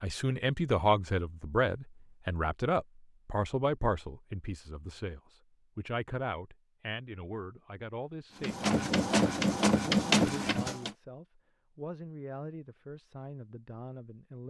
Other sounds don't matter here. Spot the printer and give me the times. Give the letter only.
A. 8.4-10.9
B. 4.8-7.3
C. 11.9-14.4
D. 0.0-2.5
A.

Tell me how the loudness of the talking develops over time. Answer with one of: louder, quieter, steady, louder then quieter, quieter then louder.
quieter.